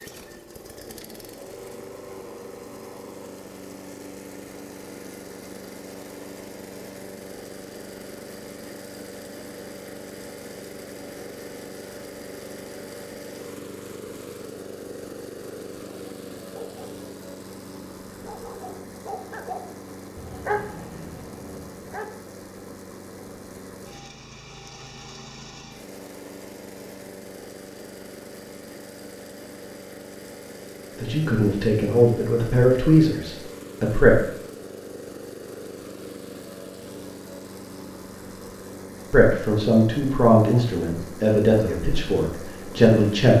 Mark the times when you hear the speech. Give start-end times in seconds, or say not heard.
31.0-34.1, 39.1-43.3.